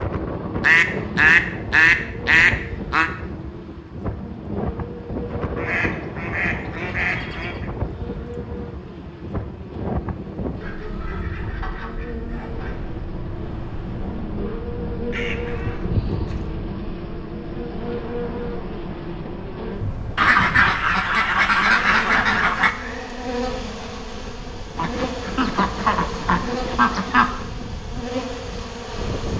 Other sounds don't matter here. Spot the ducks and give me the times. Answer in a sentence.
You can hear the ducks from 0.5 to 3.1 s, from 5.5 to 7.7 s, from 10.6 to 12.8 s, from 15.1 to 16.5 s, from 20.1 to 22.7 s and from 24.8 to 27.4 s.